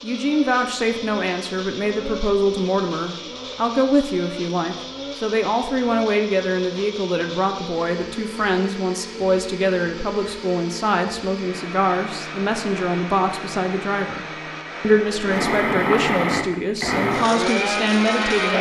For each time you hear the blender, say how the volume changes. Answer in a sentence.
You can hear the blender from 0.0 to 18.5 s, getting louder.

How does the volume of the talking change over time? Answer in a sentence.
The loudness of the talking stays about the same.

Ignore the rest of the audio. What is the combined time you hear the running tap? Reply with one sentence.
You can't hear the running tap here.